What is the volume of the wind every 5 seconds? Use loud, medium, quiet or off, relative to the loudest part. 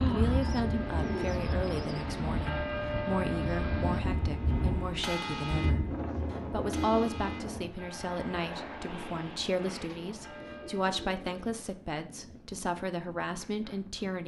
loud, medium, quiet.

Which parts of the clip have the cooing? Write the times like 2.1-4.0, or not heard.
0.4-2.1, 5.0-7.3, 9.7-11.6.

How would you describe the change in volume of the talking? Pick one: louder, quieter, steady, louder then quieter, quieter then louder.
steady.